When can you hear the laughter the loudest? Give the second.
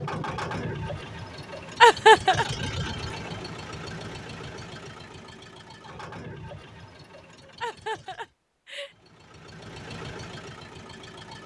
2 s.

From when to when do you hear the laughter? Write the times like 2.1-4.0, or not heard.
1.8-2.5, 7.6-8.9.